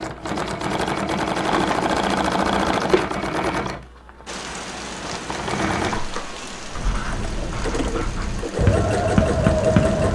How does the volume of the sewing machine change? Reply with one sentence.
The volume of the sewing machine goes down, then up.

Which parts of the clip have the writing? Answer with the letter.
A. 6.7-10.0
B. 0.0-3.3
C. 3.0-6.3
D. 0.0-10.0
A.